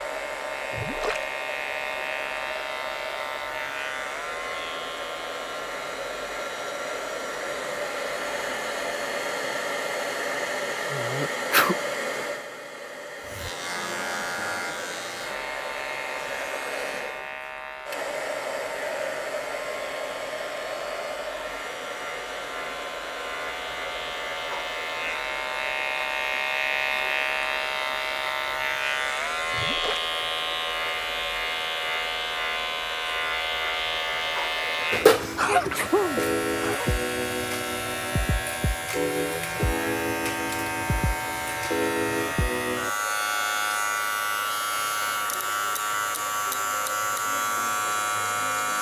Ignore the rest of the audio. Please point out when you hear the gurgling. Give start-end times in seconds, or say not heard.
0.7-1.2, 29.5-30.1.